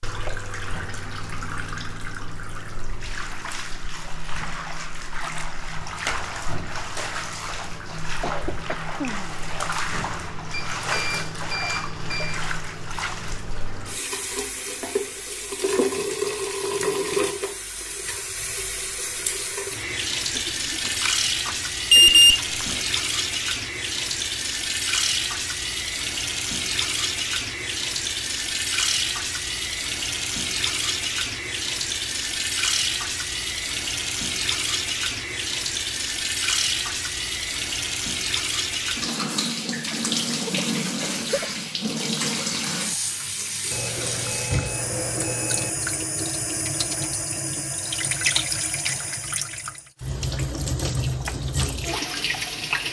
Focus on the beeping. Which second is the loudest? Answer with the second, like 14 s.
22 s.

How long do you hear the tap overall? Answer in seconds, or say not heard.
53 s.